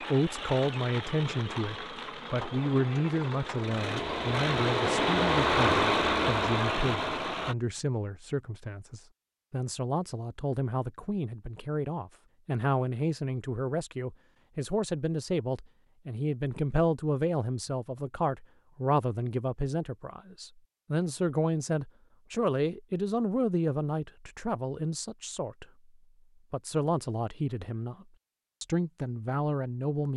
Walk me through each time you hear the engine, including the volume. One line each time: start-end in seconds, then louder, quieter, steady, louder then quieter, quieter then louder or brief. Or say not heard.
0.0-7.5 louder.